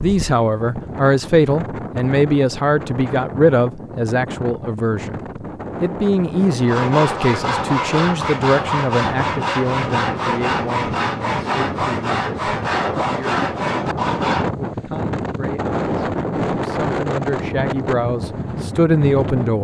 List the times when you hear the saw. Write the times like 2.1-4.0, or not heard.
6.7-14.5.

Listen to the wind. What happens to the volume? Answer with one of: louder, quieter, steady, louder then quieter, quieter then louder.
louder.